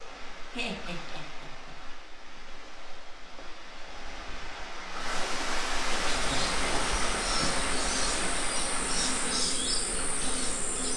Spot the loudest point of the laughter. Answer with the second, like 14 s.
1 s.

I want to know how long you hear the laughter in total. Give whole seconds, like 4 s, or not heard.
2 s.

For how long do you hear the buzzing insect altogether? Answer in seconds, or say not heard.
5 s.